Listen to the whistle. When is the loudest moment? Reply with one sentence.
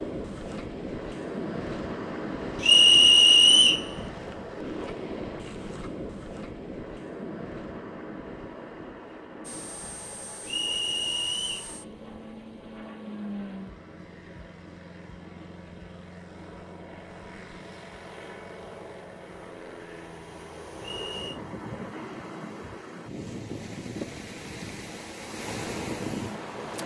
The volume of the whistle peaks at 3 seconds.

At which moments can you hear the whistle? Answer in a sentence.
You can hear the whistle from 2.6 to 3.9 s, from 10.4 to 11.7 s and from 20.8 to 21.4 s.